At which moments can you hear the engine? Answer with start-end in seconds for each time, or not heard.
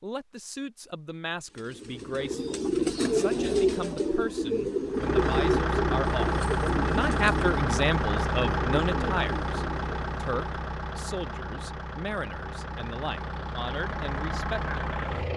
4.9-15.3.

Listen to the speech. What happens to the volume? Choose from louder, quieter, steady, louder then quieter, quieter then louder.
louder then quieter.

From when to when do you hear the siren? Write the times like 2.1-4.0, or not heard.
not heard.